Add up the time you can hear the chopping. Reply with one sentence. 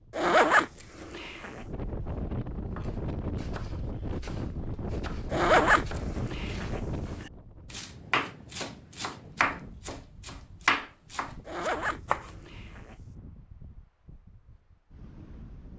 The chopping can be heard for 10 seconds in total.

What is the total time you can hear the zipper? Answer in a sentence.
You can hear the zipper for 5 seconds altogether.